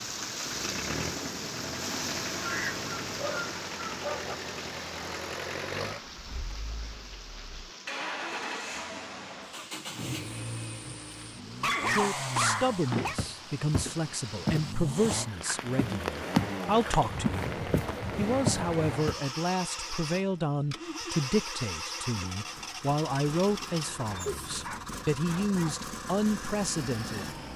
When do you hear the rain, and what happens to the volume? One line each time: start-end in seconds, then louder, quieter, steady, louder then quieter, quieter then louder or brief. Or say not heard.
0.0-19.0 quieter then louder.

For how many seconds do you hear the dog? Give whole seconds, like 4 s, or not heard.
5 s.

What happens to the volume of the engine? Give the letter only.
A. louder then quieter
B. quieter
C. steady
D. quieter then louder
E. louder
C.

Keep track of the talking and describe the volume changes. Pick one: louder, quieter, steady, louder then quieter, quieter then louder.
steady.